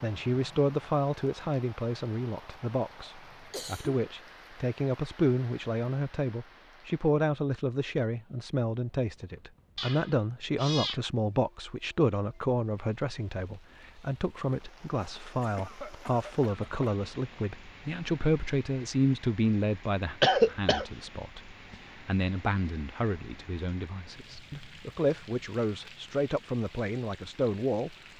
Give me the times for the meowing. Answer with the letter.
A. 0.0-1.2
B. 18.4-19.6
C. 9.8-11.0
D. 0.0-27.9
C.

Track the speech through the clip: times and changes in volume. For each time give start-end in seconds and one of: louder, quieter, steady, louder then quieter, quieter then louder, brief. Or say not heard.
0.0-27.9 steady.